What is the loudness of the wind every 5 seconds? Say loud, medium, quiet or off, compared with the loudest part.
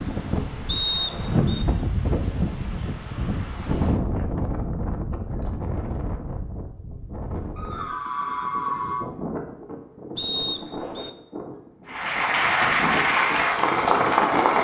loud, medium, medium.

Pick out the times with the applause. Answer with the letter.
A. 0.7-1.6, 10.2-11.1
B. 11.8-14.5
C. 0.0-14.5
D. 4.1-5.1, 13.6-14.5
B.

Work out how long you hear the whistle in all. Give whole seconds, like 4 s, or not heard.
2 s.